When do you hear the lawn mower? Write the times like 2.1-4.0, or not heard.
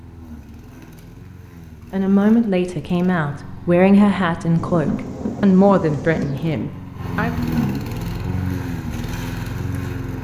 0.0-10.1.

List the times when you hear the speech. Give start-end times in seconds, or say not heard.
1.9-7.3.